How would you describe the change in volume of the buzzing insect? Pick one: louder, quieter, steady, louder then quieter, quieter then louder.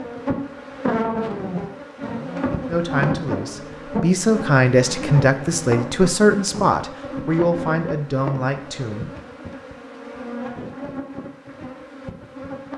quieter.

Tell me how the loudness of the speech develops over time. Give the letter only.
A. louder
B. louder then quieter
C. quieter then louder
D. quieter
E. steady
B.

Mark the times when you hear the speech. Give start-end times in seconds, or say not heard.
2.6-9.1.